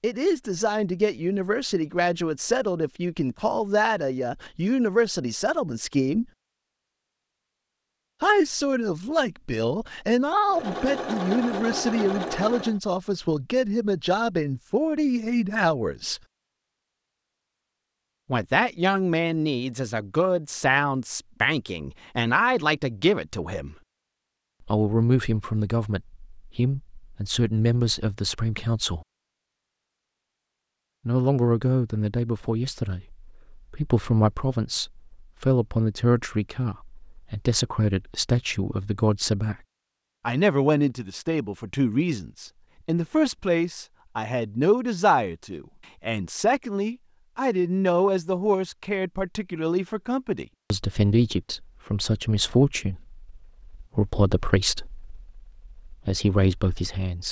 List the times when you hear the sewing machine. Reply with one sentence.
You can hear the sewing machine from 10.4 to 12.8 s.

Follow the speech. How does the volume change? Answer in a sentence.
The volume of the speech stays about the same.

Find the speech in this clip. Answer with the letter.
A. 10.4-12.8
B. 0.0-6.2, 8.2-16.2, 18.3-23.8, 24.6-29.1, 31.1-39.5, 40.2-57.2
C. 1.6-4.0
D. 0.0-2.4
B.